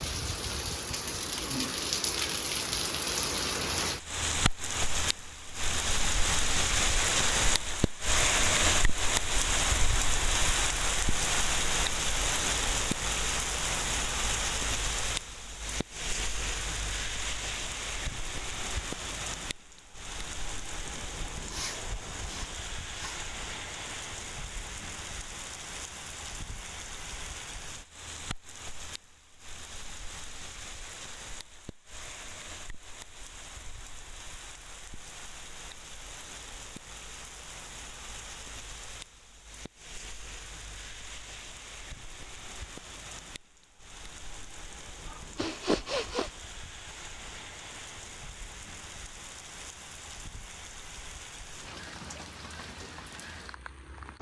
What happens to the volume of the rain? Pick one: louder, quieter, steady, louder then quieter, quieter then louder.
quieter.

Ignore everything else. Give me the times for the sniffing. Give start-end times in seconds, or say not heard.
20.9-23.1, 45.1-46.3.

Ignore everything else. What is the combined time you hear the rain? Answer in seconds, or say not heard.
54 s.